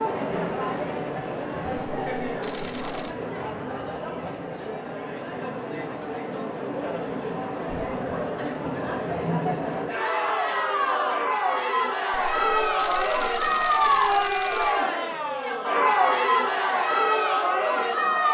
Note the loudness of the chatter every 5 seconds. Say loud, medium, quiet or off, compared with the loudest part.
medium, medium, loud, loud.